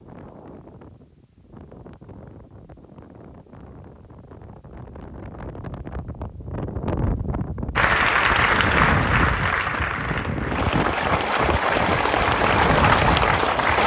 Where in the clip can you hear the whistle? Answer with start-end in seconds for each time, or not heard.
not heard.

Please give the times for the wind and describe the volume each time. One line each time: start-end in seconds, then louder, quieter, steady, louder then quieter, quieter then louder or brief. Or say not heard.
0.0-13.8 louder.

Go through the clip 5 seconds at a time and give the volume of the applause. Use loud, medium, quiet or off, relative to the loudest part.
off, loud, loud.